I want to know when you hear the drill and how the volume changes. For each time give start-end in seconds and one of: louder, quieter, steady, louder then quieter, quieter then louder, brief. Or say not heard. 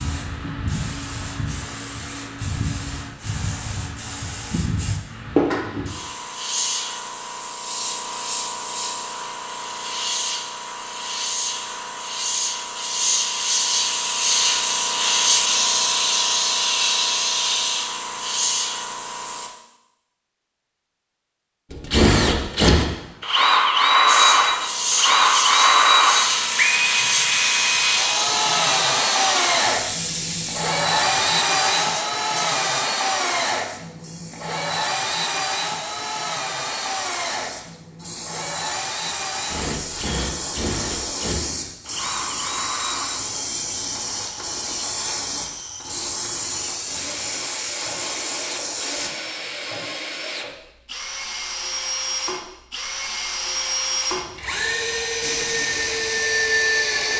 21.7-57.1 quieter then louder.